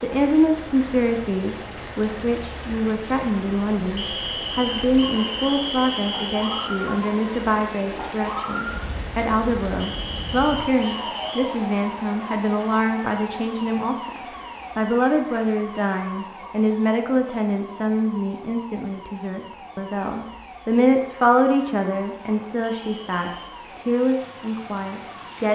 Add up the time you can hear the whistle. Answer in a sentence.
The whistle can be heard for 5 seconds in total.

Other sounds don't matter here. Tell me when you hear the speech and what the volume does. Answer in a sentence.
The speech can be heard from 0.0 to 25.5 s, at a steady volume.